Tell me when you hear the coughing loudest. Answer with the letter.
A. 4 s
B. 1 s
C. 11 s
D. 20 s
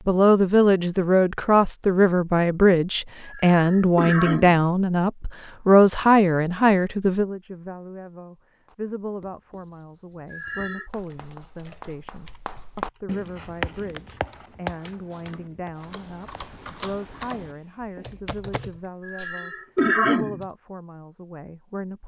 D.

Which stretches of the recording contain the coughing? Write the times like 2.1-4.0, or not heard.
3.2-4.7, 10.2-10.9, 19.0-20.4.